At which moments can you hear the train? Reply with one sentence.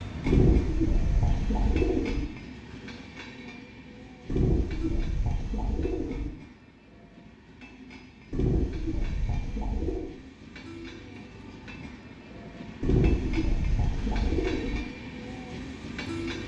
You can hear the train from 0.0 to 16.4 s.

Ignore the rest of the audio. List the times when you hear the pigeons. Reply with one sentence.
You can hear the pigeons from 0.2 to 2.2 s, from 4.2 to 6.3 s, from 8.3 to 10.1 s and from 12.8 to 14.8 s.